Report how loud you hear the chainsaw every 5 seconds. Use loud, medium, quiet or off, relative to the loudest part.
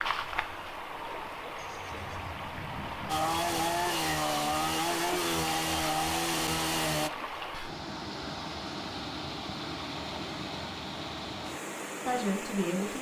loud, loud, off.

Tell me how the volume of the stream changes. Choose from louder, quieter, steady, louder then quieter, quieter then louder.
steady.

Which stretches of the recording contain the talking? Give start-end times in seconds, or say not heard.
12.1-12.9.